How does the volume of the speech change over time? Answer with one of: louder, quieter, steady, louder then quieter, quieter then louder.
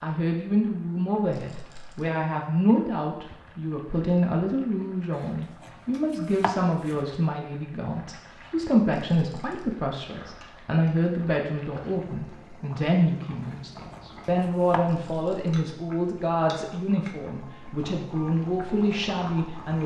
steady.